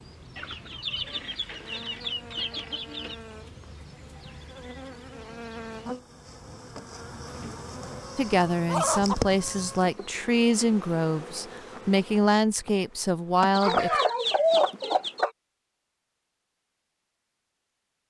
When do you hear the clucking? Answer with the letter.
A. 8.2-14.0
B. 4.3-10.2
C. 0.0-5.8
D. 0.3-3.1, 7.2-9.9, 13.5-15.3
D.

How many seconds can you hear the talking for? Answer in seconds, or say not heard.
6 s.